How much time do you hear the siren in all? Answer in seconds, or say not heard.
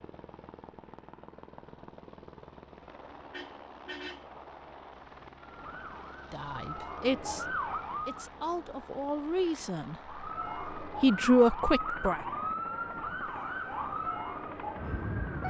8 s.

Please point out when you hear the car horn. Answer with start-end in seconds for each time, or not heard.
3.3-4.3.